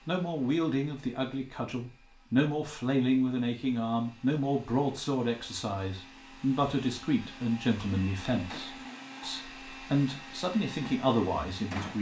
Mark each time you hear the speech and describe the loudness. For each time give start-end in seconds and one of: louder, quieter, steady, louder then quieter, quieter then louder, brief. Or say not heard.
0.1-11.9 steady.